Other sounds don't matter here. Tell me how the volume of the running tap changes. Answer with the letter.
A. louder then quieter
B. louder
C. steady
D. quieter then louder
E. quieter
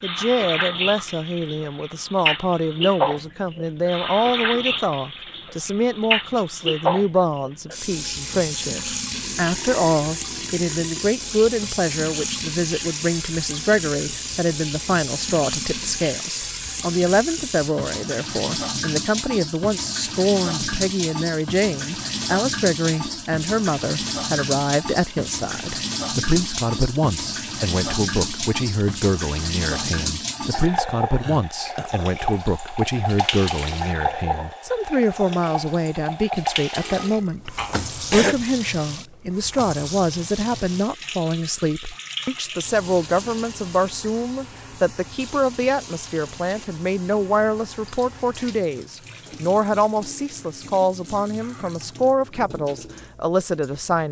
E.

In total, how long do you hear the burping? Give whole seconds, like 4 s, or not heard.
5 s.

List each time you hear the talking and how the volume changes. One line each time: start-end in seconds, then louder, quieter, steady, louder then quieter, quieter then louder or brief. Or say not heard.
0.0-54.0 steady.